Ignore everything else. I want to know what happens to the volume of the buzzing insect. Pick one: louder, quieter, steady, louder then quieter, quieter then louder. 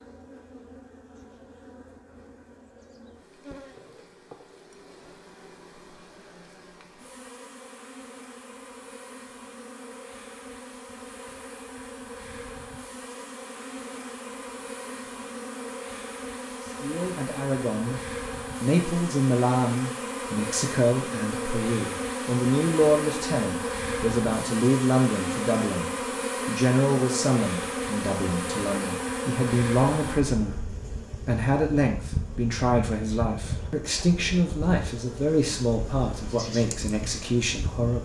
louder then quieter.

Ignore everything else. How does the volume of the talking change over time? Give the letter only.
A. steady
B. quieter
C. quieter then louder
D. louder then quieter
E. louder
A.